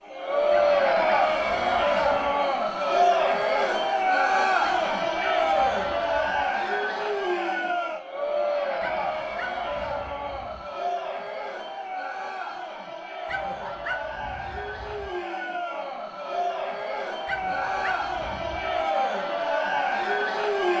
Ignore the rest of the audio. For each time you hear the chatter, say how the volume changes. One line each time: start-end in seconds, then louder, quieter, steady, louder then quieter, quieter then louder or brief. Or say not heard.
0.0-20.7 quieter then louder.